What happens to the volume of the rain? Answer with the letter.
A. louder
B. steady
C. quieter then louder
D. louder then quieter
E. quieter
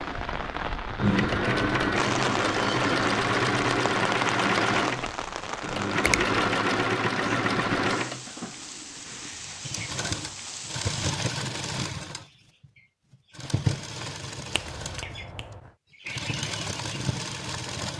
E.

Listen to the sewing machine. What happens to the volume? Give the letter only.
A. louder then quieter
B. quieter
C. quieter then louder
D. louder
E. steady
B.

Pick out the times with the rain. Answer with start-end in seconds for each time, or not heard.
0.0-11.2.